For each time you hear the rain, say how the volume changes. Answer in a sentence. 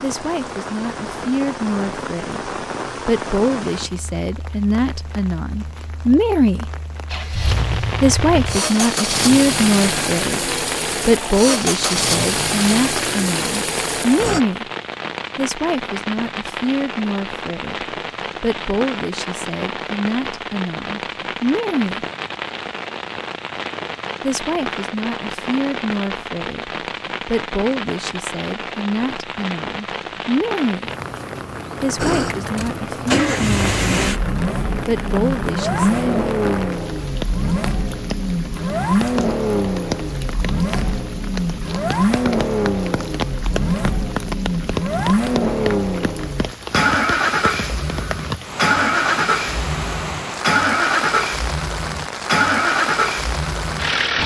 You can hear the rain from 0.0 to 54.2 s, at a steady volume.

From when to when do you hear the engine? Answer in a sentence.
The engine can be heard from 7.1 to 14.4 s and from 31.9 to 54.2 s.